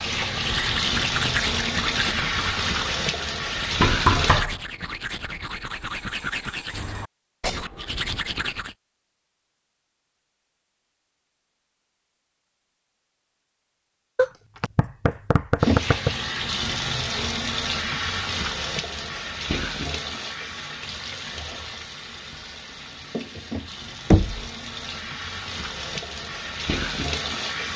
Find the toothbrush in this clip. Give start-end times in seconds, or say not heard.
0.2-8.8.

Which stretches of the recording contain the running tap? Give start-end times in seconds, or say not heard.
0.0-4.5, 15.6-27.7.